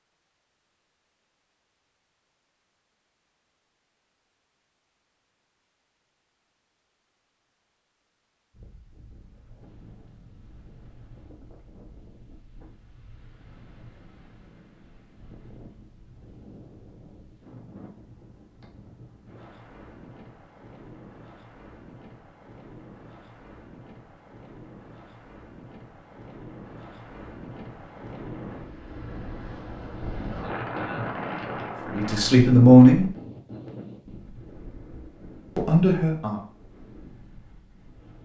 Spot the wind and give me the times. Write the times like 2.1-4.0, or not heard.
8.5-38.2.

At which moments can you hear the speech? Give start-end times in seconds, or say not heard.
31.9-33.1, 35.5-36.4.